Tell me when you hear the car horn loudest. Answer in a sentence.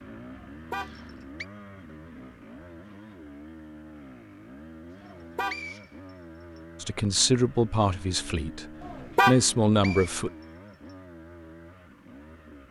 The loudest moment of the car horn is at 9 seconds.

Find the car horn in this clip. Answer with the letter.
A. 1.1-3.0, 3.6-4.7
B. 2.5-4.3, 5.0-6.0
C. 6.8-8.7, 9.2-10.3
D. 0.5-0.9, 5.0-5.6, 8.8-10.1
D.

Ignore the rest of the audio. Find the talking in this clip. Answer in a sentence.
The talking can be heard from 6.8 to 8.7 s and from 9.2 to 10.3 s.